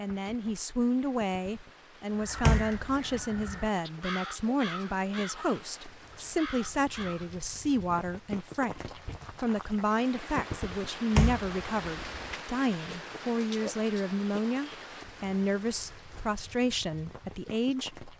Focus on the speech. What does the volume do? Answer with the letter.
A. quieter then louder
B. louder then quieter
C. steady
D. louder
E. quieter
C.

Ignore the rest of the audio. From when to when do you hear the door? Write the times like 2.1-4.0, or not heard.
2.4-3.1, 11.2-12.3.